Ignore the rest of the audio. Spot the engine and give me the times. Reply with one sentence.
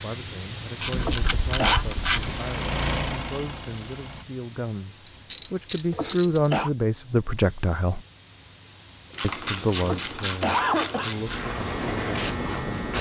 The engine can be heard from 2.1 to 4.2 s.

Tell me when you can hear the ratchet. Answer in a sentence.
You can hear the ratchet from 0.8 to 2.5 s, from 5.0 to 6.5 s and from 9.1 to 11.4 s.